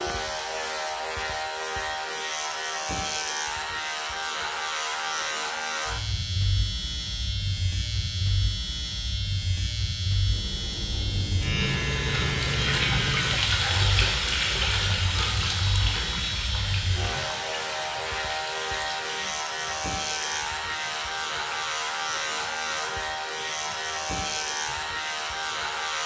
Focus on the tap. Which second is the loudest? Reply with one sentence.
The volume of the tap peaks at 14 seconds.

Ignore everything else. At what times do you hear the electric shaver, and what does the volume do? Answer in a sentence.
The electric shaver can be heard from 0.0 to 26.0 s, at a steady volume.